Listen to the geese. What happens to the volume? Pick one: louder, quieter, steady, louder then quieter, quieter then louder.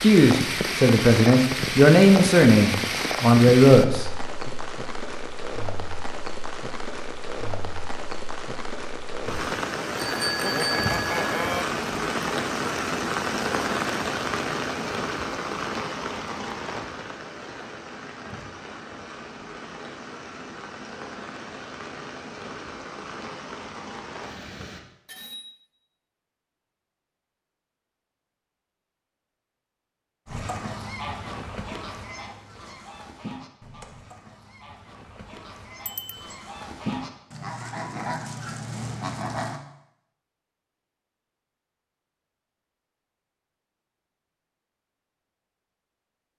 quieter then louder.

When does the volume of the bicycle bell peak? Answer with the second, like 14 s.
11 s.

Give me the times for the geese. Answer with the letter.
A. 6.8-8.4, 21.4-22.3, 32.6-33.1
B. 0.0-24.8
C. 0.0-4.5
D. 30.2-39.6
D.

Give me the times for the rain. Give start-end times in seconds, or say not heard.
0.0-24.8.